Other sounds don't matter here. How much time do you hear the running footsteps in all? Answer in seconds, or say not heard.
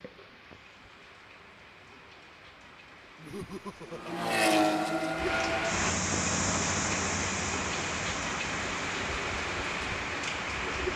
not heard.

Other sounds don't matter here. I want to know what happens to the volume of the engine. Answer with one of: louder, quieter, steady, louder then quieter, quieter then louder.
quieter.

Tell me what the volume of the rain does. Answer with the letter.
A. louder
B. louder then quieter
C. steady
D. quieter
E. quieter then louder
A.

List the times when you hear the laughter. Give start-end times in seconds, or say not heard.
3.1-4.2.